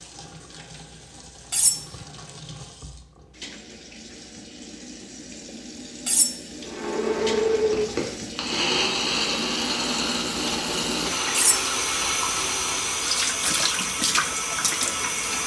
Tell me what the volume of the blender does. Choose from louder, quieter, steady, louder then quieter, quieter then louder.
quieter.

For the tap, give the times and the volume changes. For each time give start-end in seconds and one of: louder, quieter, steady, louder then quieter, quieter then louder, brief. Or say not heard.
0.0-15.4 louder.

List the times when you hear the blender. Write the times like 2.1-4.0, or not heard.
6.6-13.2.